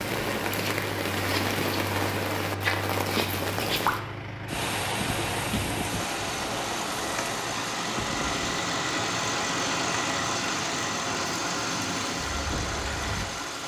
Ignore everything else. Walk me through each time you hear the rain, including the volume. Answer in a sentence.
The rain can be heard from 0.0 to 13.4 s, getting quieter.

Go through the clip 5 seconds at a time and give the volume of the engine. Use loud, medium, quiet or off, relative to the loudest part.
medium, loud, loud.